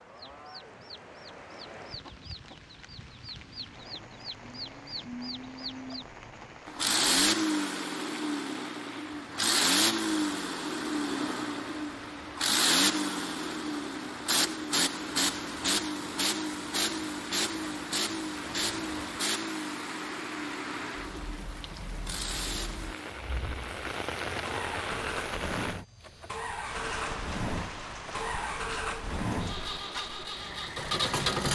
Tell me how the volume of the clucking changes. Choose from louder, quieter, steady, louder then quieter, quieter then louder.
louder.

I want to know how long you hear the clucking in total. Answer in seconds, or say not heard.
6 s.